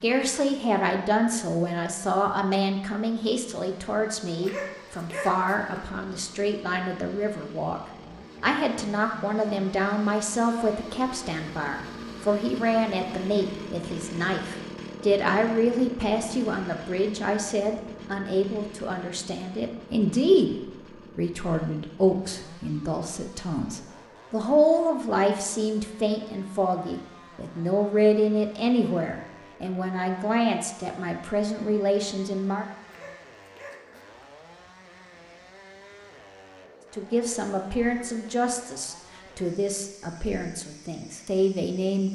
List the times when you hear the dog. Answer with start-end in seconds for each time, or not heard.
4.4-5.8, 32.9-34.1.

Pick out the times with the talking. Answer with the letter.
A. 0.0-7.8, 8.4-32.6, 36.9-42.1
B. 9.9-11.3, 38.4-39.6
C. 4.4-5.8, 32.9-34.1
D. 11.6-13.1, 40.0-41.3
A.